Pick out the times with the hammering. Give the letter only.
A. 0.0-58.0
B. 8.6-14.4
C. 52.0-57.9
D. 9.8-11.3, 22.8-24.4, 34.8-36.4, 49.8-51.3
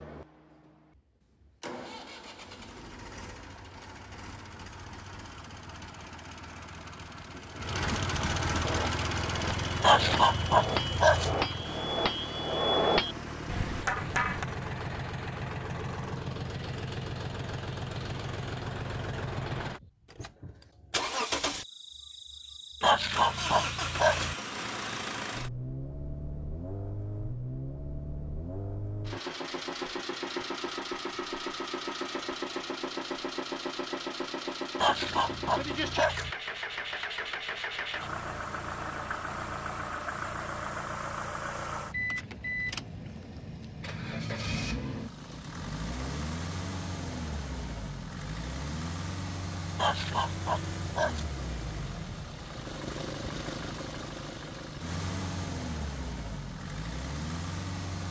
B.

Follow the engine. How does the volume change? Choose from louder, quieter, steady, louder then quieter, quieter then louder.
steady.